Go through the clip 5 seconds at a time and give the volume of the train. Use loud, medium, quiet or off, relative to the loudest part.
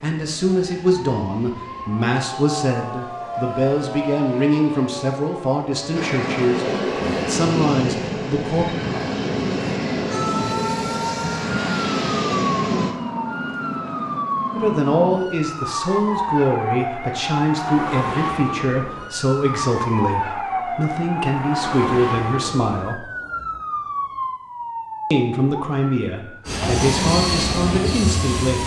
quiet, loud, loud, off, off, loud.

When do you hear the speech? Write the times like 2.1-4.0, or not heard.
0.0-8.7, 14.6-23.1, 25.1-28.6.